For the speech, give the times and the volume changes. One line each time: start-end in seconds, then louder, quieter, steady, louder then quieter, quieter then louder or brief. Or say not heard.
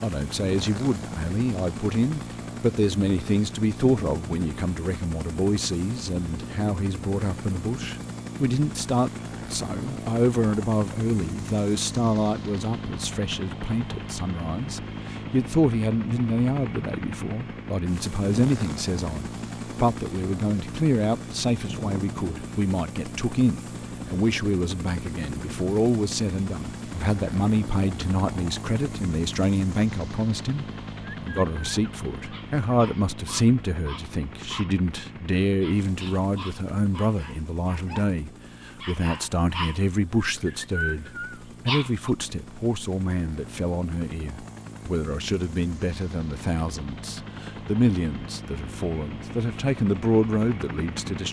0.0-51.2 steady.